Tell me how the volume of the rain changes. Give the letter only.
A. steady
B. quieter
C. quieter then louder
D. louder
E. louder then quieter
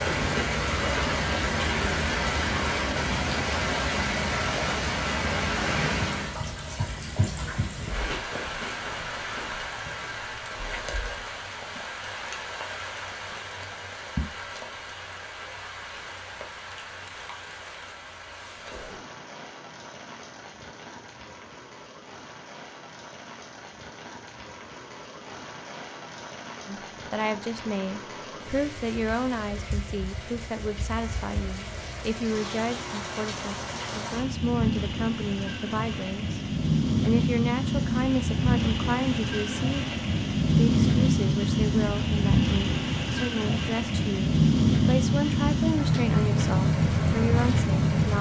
C.